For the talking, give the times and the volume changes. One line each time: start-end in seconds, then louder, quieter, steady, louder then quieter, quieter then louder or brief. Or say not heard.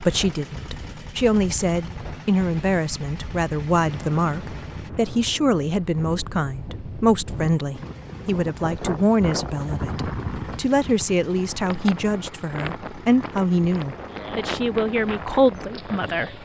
0.0-16.4 steady.